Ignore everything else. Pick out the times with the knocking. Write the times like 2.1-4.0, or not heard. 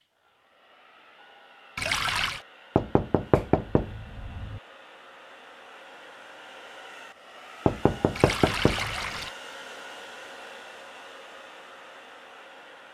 2.8-4.6, 7.7-9.0.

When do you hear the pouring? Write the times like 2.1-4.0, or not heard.
1.8-2.5, 8.2-9.3.